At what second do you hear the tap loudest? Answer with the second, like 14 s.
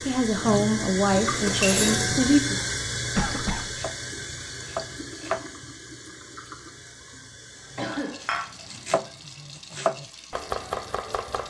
2 s.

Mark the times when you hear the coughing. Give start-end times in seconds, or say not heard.
3.1-3.8, 7.8-8.2.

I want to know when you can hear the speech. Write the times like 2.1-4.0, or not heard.
0.1-2.6.